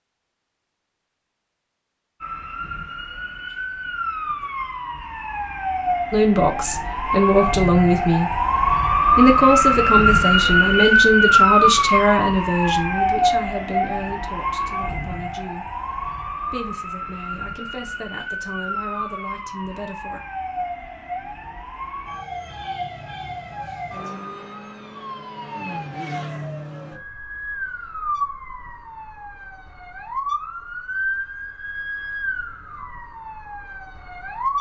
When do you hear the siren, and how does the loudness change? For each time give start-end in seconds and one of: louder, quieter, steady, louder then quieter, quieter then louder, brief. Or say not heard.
2.2-34.5 louder then quieter.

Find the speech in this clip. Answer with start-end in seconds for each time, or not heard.
6.1-8.4, 9.2-15.7, 16.5-20.2.